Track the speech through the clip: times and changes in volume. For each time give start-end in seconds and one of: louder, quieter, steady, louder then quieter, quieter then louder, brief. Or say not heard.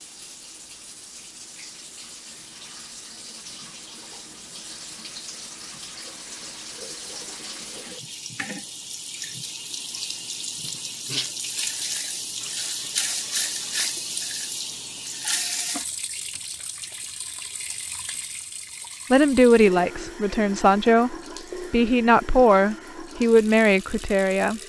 19.1-24.6 steady.